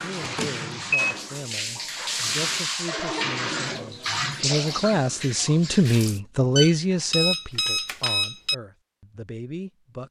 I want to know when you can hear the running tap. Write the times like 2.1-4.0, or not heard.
0.0-6.2.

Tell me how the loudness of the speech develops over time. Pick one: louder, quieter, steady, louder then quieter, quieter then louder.
louder then quieter.